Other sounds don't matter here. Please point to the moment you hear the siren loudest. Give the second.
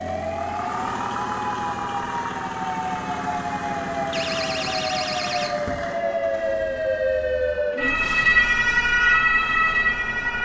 9 s.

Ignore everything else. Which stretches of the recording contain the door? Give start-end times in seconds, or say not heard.
4.1-5.8.